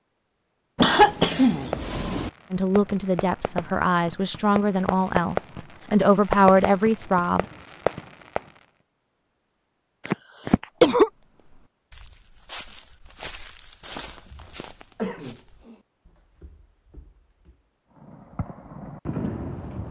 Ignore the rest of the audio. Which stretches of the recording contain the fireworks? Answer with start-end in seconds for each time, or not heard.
1.6-8.5, 18.0-19.8.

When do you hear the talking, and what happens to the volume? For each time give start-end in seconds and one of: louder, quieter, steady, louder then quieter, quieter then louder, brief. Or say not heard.
2.5-7.5 louder.